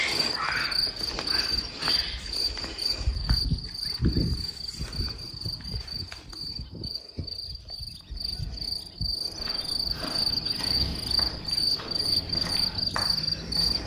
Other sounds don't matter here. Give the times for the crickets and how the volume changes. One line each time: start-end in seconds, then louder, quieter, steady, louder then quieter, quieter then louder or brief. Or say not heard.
0.0-13.8 quieter then louder.